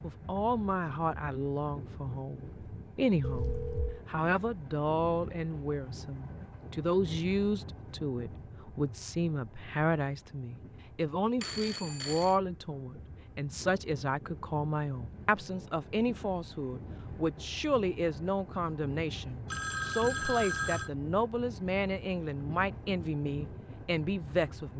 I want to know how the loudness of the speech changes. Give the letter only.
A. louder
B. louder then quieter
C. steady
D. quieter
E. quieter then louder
C.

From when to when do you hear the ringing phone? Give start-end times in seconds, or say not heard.
3.2-4.0, 11.4-12.3, 19.4-20.9.